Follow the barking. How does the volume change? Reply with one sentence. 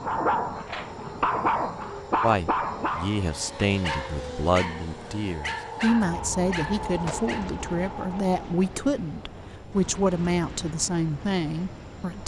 The volume of the barking goes down.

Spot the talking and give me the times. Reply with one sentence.
You can hear the talking from 2.2 to 12.2 s.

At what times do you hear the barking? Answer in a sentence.
You can hear the barking from 0.0 to 7.5 s.